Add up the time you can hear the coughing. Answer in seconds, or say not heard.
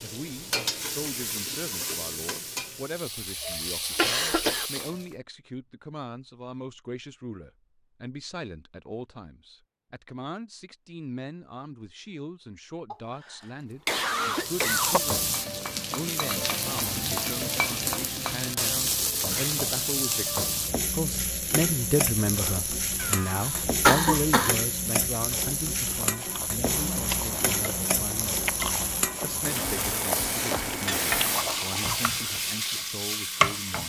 4 s.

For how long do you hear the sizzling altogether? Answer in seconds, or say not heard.
25 s.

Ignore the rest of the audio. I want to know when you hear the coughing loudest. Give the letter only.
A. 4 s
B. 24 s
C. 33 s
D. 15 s
B.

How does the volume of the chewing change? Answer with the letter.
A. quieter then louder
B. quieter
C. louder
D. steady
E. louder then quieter
D.